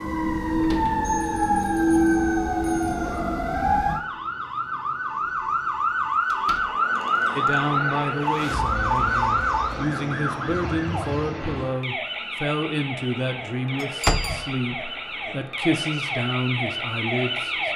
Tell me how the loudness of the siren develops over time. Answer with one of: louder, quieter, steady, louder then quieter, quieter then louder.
quieter.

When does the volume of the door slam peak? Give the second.
14 s.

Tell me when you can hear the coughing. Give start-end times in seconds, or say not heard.
not heard.